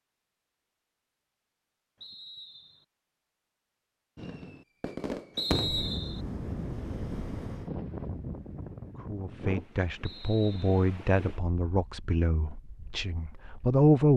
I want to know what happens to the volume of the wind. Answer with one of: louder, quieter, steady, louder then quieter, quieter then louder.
quieter.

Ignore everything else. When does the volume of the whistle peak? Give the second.
6 s.